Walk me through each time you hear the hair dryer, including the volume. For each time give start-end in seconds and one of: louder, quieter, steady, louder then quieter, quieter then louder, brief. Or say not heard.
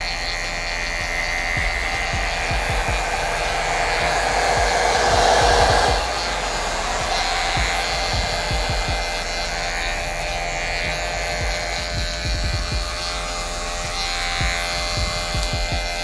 0.0-15.7 louder then quieter.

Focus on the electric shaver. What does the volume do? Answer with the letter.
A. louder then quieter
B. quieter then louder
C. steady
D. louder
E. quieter
C.